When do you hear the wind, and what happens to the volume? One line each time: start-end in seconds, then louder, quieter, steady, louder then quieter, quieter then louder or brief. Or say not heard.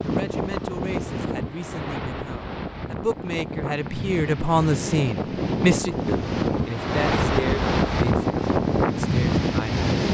0.0-10.0 louder.